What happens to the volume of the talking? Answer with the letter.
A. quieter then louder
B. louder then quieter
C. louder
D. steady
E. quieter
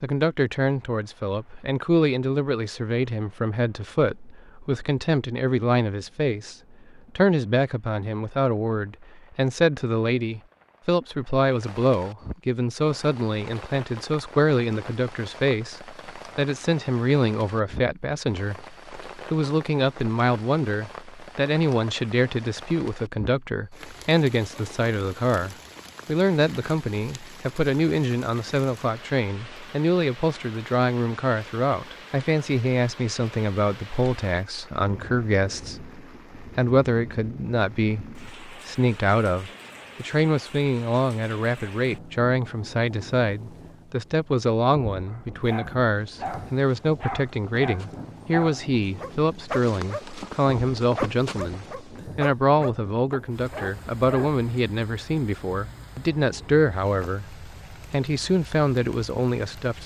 D.